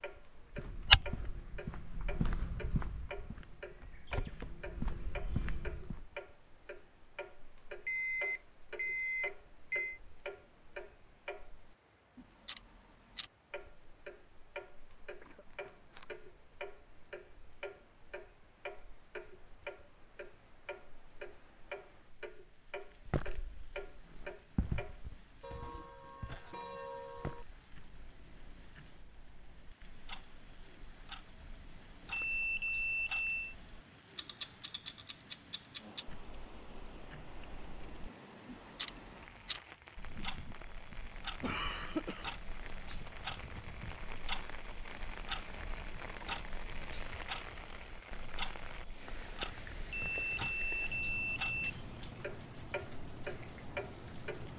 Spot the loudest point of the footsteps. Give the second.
1 s.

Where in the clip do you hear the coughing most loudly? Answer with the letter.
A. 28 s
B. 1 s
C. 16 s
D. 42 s
D.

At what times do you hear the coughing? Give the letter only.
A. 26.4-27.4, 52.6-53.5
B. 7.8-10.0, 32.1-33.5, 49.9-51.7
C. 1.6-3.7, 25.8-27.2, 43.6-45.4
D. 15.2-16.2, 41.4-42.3
D.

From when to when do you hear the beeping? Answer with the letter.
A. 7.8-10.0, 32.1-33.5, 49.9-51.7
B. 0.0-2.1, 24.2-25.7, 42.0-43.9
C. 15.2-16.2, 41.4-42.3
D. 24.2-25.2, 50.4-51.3
A.